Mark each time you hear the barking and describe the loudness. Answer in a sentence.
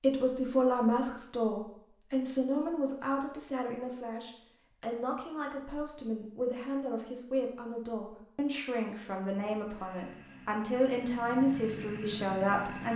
You can't hear the barking here.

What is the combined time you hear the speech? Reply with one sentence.
You can hear the speech for 13 seconds altogether.